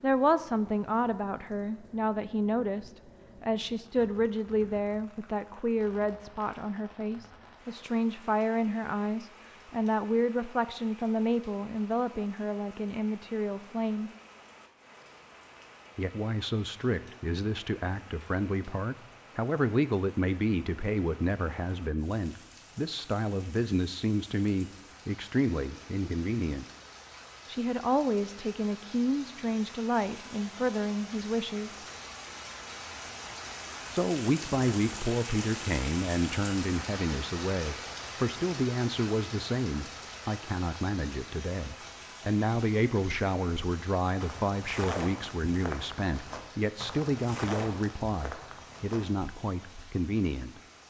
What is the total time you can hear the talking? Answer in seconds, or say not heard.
46 s.